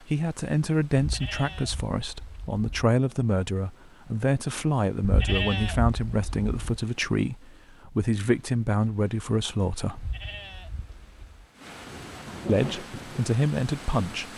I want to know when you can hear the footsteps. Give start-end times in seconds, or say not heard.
not heard.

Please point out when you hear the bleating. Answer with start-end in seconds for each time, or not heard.
0.9-2.8, 5.0-6.8, 9.9-11.4.